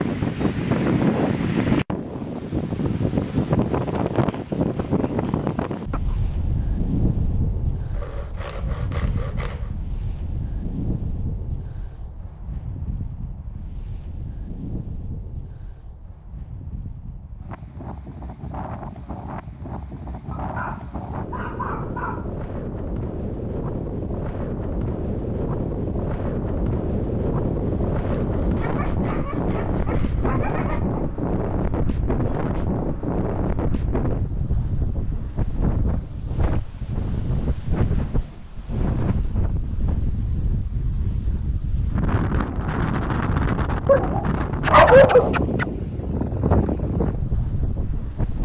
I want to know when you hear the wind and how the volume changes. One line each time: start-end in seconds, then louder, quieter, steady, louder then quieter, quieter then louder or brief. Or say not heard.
0.0-48.4 quieter then louder.